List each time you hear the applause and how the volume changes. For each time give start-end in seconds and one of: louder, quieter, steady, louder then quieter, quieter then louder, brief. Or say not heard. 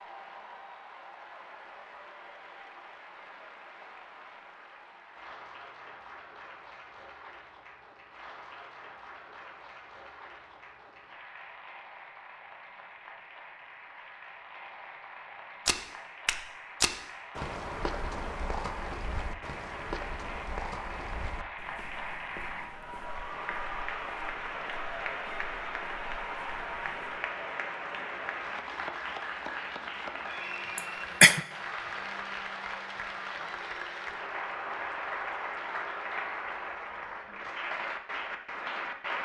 0.0-39.2 louder.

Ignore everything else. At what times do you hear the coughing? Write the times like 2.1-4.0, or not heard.
30.8-31.4.